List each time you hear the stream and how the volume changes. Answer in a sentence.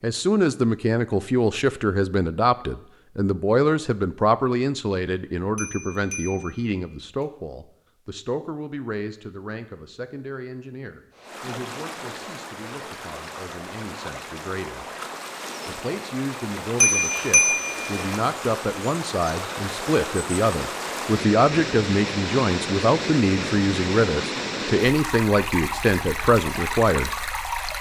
The stream can be heard from 11.1 to 27.7 s, getting louder.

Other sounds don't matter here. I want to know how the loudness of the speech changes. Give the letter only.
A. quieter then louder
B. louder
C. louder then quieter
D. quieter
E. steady
A.